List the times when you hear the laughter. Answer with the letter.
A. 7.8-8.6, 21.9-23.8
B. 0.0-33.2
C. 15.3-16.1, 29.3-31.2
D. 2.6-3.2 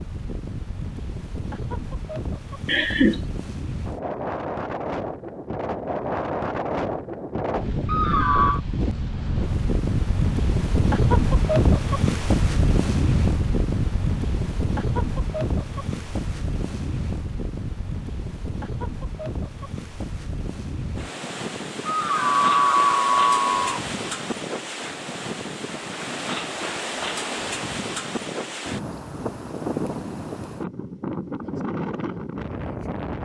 D.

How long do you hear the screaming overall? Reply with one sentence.
You can hear the screaming for 3 seconds altogether.